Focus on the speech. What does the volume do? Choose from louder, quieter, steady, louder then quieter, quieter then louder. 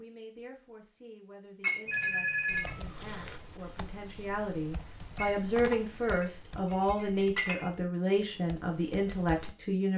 louder.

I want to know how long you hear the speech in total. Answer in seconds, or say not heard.
10 s.